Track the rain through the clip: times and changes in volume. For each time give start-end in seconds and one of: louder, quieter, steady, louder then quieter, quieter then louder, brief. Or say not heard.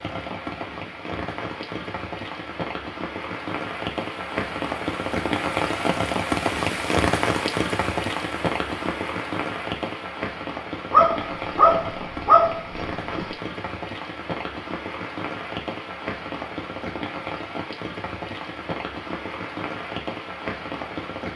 0.0-21.3 louder then quieter.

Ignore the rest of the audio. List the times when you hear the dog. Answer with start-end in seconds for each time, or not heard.
10.9-13.3.